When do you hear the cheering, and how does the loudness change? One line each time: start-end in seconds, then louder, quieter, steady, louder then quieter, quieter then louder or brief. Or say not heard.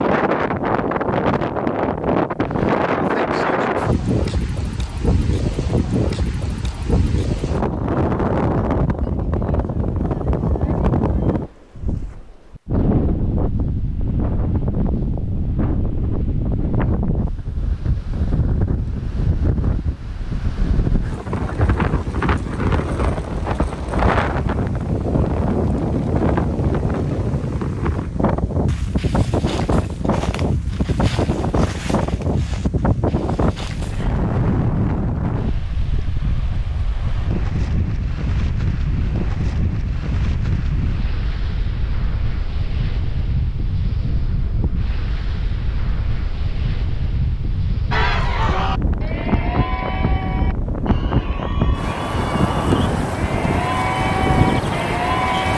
47.9-55.5 quieter then louder.